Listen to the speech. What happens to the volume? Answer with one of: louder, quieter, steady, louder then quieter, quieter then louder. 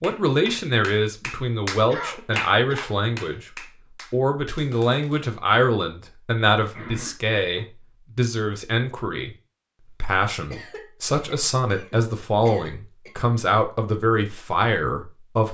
steady.